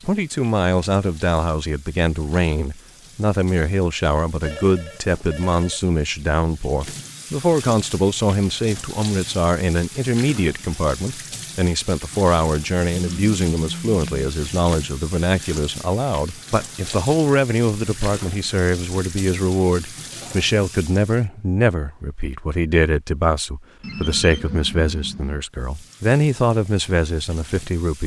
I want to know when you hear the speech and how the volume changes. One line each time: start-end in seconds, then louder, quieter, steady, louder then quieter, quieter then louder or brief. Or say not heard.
0.1-28.0 steady.